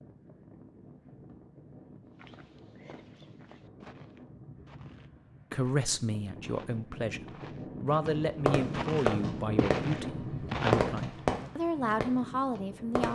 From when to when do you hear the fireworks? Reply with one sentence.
You can hear the fireworks from 8.1 to 13.0 s.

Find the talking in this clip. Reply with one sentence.
The talking can be heard from 5.5 to 13.0 s.